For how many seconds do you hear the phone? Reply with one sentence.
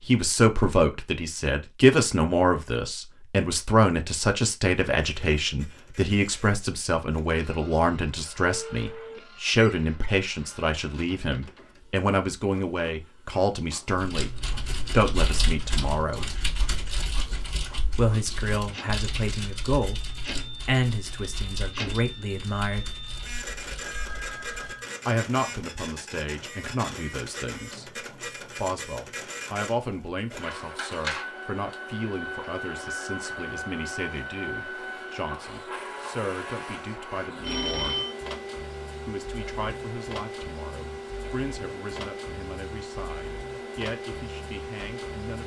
You can hear the phone for 3 seconds altogether.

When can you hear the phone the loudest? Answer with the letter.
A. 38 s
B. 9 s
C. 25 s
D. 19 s
A.